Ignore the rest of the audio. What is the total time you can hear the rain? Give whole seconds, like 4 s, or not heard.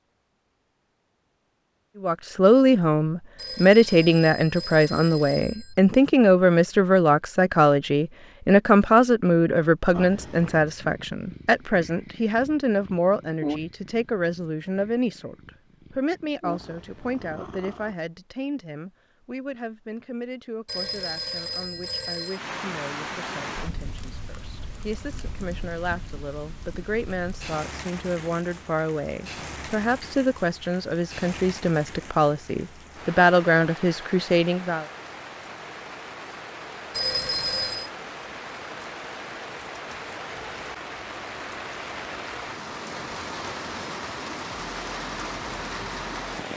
24 s.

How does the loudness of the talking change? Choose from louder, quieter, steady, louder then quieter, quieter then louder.
quieter then louder.